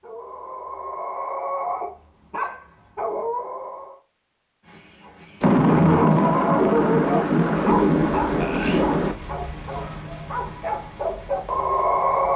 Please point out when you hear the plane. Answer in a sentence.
The plane can't be heard in this clip.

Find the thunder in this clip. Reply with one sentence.
You can hear the thunder from 5.4 to 9.2 s.